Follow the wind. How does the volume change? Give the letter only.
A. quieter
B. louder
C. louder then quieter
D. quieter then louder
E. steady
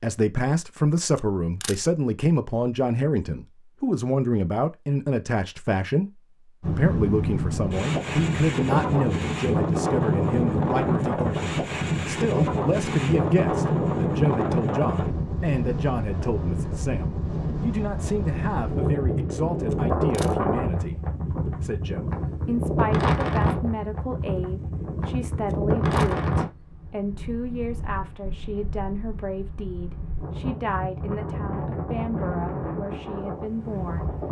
A.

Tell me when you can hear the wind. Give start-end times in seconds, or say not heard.
6.6-34.2.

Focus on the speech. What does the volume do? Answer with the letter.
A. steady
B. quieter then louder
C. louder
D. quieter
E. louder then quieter
D.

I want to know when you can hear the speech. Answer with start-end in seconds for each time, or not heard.
0.0-34.1.